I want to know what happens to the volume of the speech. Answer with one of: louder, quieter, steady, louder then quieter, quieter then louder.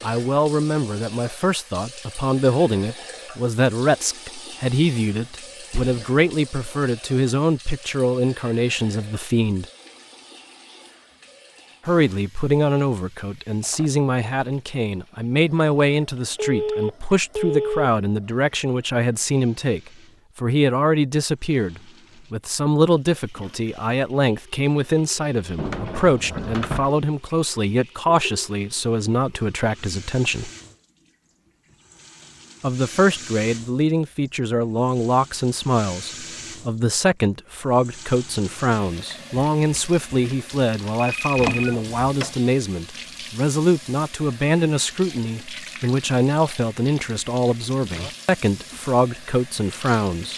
steady.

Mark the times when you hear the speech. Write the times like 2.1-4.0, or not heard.
0.0-9.7, 11.8-30.5, 32.6-50.3.